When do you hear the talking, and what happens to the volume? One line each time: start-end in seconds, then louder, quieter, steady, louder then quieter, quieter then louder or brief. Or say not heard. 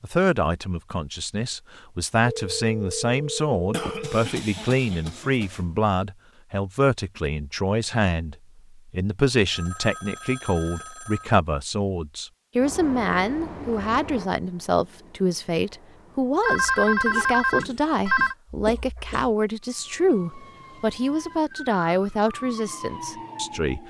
0.0-23.8 steady.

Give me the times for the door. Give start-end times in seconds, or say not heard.
not heard.